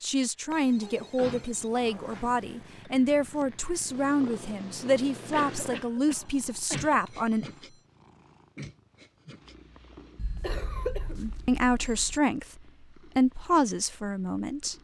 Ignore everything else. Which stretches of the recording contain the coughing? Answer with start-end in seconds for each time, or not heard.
1.1-2.2, 5.3-7.0, 10.4-11.2.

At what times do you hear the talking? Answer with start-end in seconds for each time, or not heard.
0.0-7.5, 11.2-14.7.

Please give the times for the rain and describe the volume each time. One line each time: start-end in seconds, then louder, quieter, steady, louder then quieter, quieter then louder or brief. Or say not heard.
not heard.